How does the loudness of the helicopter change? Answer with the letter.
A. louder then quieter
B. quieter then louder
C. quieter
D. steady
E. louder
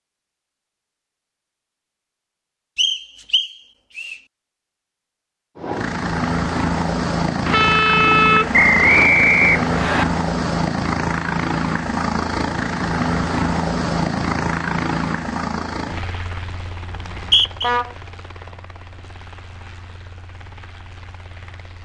C.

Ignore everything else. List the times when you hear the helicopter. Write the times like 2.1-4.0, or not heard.
5.5-21.8.